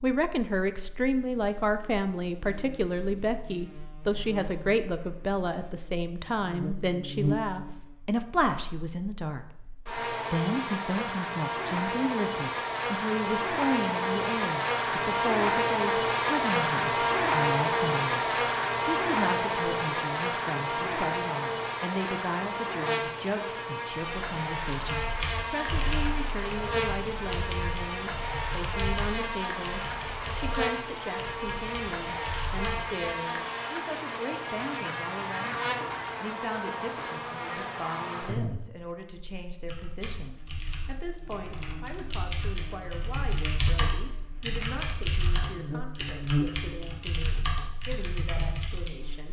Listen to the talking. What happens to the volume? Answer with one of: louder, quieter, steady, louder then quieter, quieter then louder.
quieter.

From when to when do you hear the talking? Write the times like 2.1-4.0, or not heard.
0.0-49.2.